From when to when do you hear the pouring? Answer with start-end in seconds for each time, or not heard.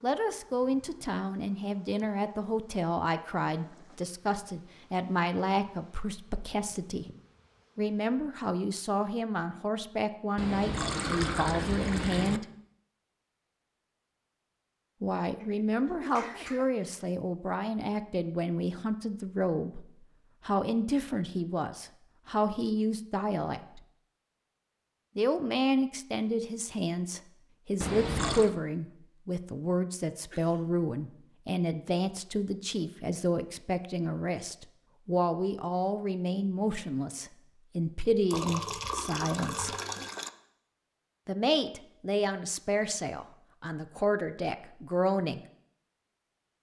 10.3-12.4, 27.8-28.5, 38.3-40.3.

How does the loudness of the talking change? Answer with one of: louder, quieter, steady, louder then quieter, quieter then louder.
steady.